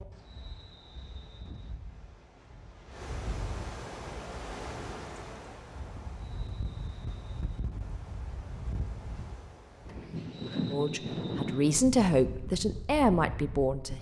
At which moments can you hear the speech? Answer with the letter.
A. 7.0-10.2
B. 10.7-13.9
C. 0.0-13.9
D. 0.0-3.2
B.